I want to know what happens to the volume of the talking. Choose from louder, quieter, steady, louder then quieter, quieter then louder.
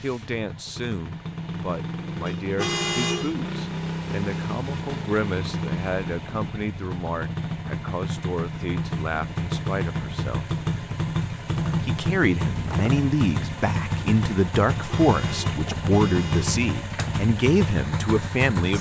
louder.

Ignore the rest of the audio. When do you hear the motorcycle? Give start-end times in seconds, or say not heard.
0.0-18.7.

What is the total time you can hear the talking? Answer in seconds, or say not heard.
17 s.